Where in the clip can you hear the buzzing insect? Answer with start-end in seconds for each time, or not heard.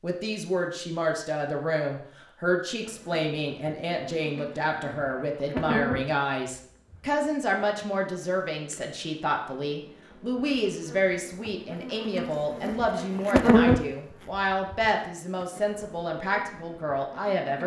2.9-17.6.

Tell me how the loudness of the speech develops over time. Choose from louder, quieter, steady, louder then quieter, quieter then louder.
steady.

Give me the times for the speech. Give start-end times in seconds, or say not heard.
0.0-17.6.